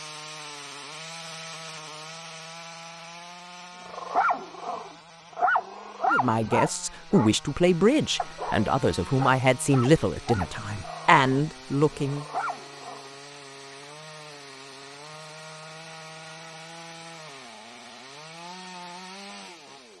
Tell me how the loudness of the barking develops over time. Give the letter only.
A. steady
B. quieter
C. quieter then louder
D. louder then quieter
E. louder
B.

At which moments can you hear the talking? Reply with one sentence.
The talking can be heard from 6.1 to 12.2 s.